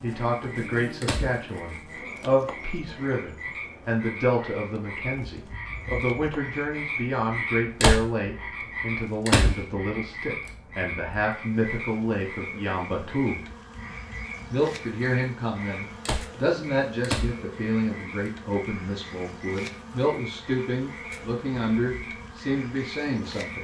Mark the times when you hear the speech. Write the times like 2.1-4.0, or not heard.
0.0-13.4, 14.5-23.6.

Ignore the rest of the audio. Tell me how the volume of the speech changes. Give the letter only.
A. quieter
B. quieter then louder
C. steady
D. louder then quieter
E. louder
C.